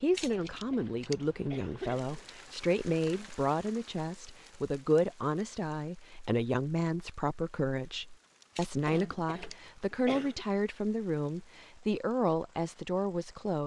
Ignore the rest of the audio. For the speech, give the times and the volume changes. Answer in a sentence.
The speech can be heard from 0.0 to 13.6 s, at a steady volume.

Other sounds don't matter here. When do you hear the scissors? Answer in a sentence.
The scissors can be heard from 0.1 to 1.2 s and from 8.6 to 9.7 s.